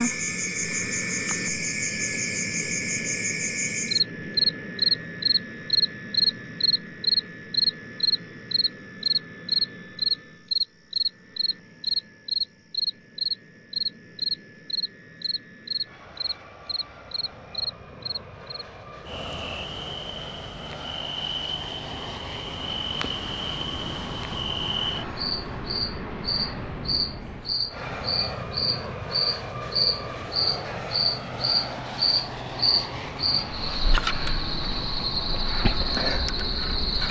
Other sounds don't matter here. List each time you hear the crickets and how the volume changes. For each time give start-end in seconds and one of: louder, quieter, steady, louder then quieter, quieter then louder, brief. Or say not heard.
0.0-37.0 quieter then louder.